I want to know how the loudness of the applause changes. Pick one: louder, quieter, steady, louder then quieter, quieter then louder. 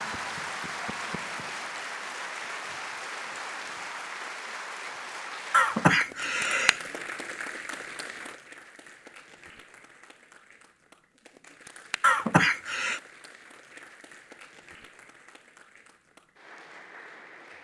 quieter.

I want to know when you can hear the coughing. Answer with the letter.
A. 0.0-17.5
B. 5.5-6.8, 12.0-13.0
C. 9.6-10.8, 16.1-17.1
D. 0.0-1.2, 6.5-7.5
B.